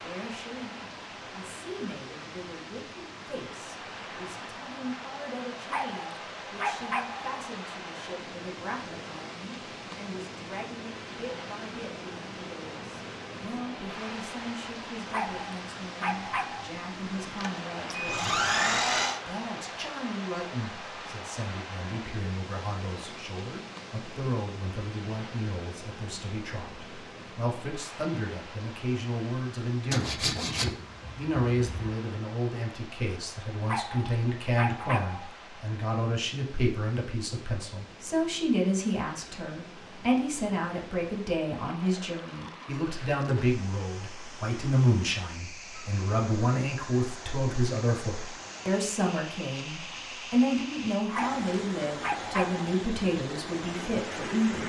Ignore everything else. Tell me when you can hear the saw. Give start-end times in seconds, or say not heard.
16.9-19.2, 29.9-31.9.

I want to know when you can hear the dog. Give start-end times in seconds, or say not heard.
5.7-7.3, 15.1-16.8, 33.6-35.3, 51.1-52.8.